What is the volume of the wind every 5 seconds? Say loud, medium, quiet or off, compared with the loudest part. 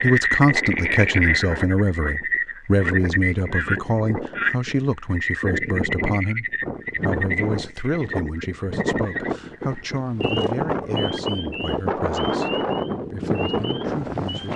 medium, loud, loud.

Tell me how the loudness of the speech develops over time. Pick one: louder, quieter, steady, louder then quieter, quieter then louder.
quieter.